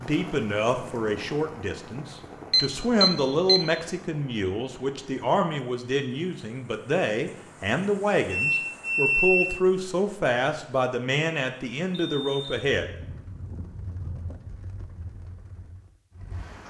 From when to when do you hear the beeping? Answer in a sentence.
The beeping can be heard from 2.5 to 3.6 s, from 8.3 to 9.4 s and from 11.9 to 12.6 s.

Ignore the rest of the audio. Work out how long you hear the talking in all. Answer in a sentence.
You can hear the talking for 13 seconds altogether.